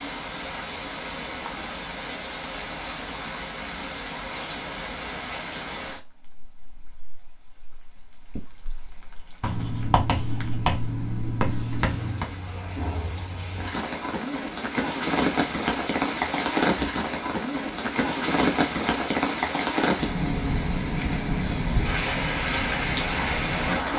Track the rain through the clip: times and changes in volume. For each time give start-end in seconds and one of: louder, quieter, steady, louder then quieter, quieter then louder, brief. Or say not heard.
0.0-23.9 quieter then louder.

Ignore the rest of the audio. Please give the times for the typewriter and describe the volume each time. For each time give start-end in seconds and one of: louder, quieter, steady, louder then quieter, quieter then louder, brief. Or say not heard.
not heard.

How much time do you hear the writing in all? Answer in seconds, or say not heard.
3 s.